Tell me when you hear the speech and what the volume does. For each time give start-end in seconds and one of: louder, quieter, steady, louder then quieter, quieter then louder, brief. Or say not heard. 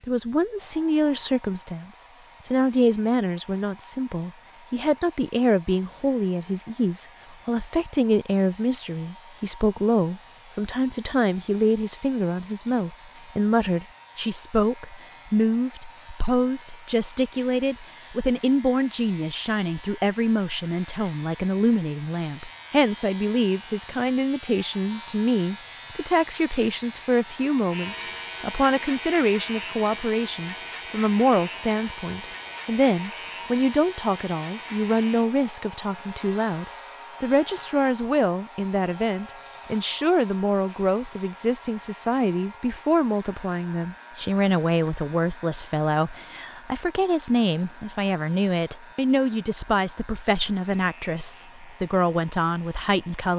0.0-53.3 steady.